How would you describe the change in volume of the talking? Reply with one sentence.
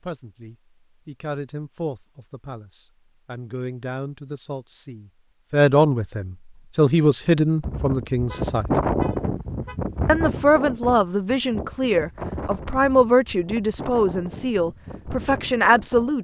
The volume of the talking goes up.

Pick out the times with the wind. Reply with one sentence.
You can hear the wind from 7.6 to 16.1 s.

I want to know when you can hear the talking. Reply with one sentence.
You can hear the talking from 0.0 to 8.7 s and from 10.1 to 16.1 s.